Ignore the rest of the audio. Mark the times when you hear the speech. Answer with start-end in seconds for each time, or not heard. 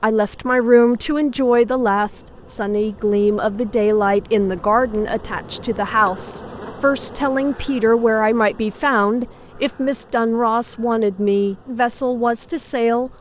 0.0-13.1.